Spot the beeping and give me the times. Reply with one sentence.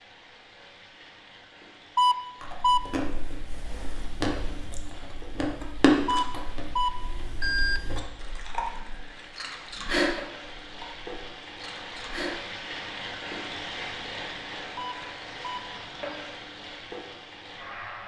You can hear the beeping from 1.9 to 2.9 s, from 6.0 to 7.8 s and from 14.8 to 16.2 s.